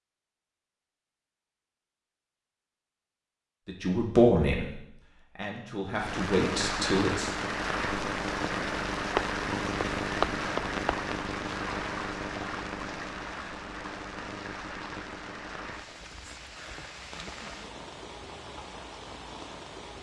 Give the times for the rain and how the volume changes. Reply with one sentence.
The rain can be heard from 5.9 to 19.9 s, getting quieter.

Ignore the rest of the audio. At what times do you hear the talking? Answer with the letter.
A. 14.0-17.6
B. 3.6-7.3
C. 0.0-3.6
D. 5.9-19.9
B.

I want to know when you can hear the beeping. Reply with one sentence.
The beeping can't be heard in this clip.